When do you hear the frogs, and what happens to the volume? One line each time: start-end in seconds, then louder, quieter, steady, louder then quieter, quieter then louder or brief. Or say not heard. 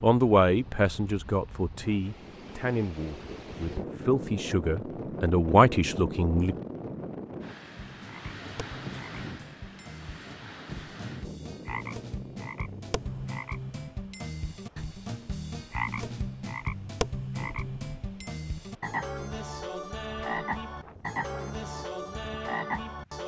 7.7-23.2 louder.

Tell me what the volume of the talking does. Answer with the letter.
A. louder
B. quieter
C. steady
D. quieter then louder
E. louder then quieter
D.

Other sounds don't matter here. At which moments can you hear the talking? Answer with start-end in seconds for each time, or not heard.
0.0-6.5.